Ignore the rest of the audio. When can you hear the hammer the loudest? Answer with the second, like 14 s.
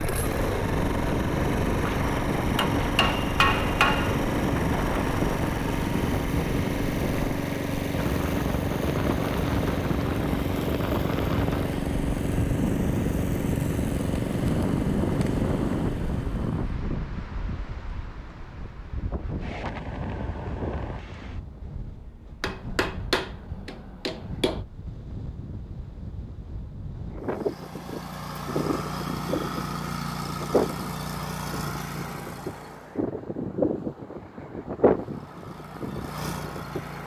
4 s.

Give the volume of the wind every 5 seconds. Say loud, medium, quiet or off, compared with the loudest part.
loud, loud, loud, loud, medium, medium, loud, medium.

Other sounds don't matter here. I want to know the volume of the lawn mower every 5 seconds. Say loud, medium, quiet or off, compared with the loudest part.
loud, loud, loud, loud, off, medium, medium, medium.